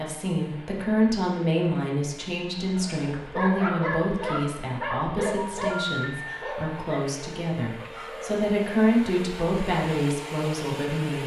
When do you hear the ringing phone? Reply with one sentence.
You can hear the ringing phone from 5.3 to 6.3 s.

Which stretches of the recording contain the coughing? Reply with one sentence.
The coughing can't be heard in this clip.